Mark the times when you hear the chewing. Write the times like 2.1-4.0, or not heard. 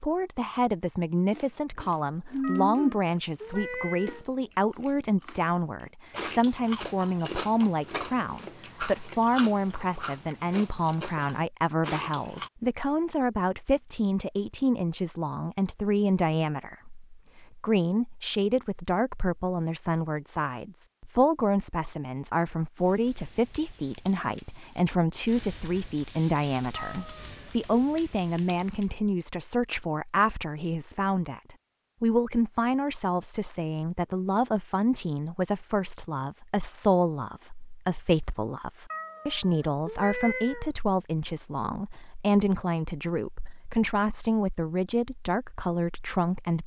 1.3-5.5, 6.1-12.5.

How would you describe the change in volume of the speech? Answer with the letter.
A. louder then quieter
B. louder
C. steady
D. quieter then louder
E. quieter
C.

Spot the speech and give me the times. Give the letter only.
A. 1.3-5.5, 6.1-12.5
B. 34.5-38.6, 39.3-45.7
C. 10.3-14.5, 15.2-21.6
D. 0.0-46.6
D.